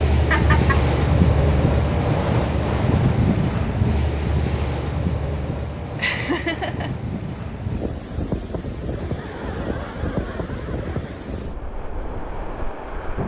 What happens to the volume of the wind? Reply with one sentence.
The loudness of the wind goes down.